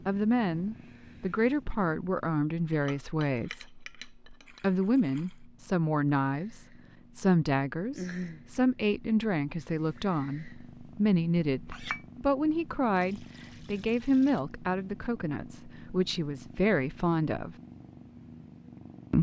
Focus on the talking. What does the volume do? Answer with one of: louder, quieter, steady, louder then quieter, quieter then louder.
steady.